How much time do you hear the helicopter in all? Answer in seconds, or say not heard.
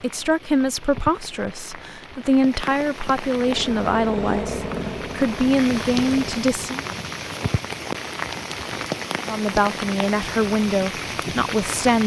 3 s.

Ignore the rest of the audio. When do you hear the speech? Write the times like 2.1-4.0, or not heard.
0.0-6.8, 9.2-12.0.